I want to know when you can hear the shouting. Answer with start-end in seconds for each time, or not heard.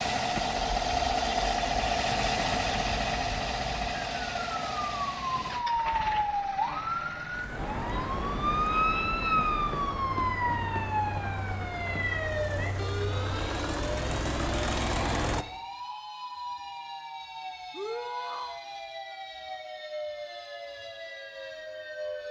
17.7-18.6.